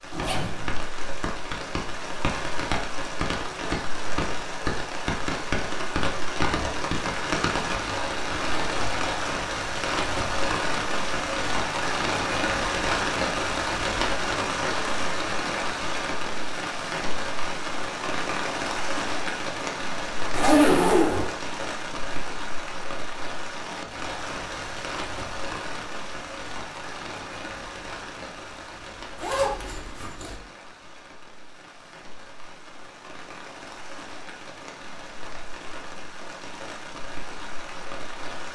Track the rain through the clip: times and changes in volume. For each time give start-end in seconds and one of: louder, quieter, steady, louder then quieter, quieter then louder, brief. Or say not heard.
0.0-38.5 quieter.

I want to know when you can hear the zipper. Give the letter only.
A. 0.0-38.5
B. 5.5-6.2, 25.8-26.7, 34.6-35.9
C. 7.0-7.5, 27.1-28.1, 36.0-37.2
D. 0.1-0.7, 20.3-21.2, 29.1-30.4
D.